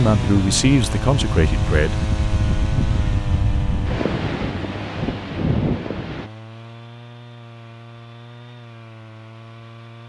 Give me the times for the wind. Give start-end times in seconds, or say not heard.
0.0-6.3.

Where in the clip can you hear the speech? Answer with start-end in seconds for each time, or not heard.
0.0-2.0.